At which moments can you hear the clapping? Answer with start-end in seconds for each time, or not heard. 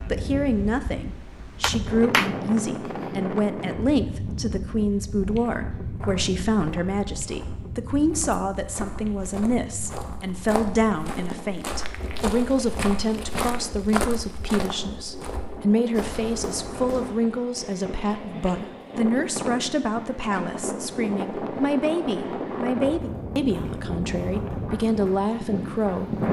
1.6-2.4.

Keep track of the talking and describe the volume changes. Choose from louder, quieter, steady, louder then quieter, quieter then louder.
steady.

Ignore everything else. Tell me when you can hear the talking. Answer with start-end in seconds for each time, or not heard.
0.1-26.1.